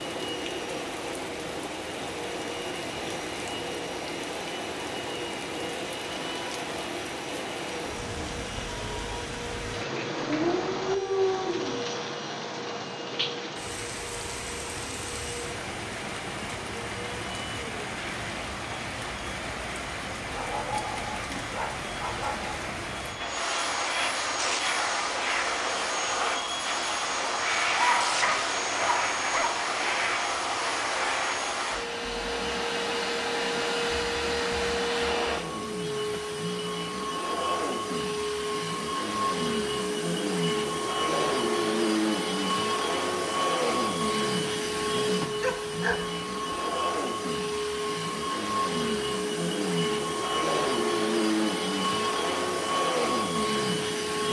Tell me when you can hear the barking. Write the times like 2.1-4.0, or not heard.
10.2-11.8, 20.2-22.6, 27.7-29.6, 45.4-46.6.